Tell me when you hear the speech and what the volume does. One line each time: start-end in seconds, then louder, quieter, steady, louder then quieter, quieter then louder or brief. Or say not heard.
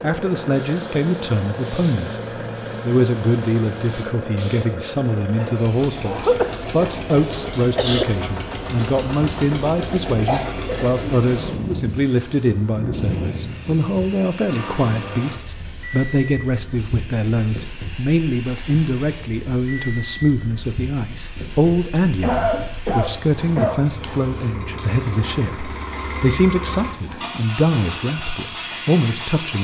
0.0-2.1 brief
2.8-29.5 steady.